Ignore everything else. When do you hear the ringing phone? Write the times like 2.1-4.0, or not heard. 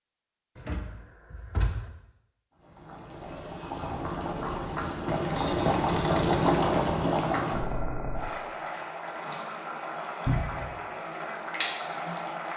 not heard.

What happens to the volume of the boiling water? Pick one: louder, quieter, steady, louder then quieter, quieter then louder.
louder then quieter.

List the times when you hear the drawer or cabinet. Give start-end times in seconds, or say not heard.
0.6-1.9, 5.3-6.5, 10.2-10.8.